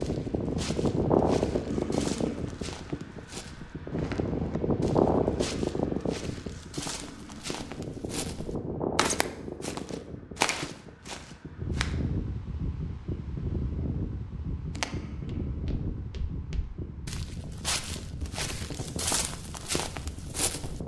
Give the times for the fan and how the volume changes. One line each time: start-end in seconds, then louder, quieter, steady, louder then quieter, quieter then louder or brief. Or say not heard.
0.0-20.8 quieter.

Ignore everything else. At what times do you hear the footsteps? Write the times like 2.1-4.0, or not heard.
0.0-11.9, 14.8-20.8.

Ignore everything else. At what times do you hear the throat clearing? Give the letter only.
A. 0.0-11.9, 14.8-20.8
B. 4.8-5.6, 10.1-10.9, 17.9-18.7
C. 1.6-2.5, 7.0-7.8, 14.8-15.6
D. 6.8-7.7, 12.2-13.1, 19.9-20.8
C.